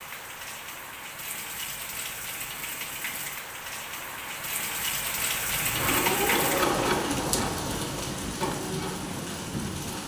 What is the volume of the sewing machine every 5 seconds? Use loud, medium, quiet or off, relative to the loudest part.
off, loud.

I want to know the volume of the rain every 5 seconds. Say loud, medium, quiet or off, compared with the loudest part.
medium, loud.